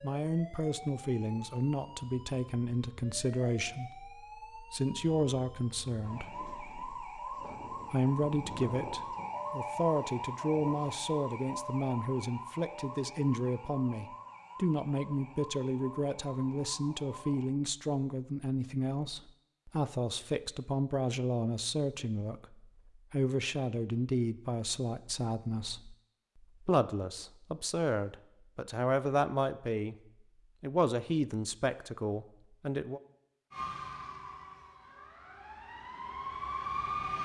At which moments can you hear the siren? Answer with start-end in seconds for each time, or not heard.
0.0-17.5, 33.5-37.1.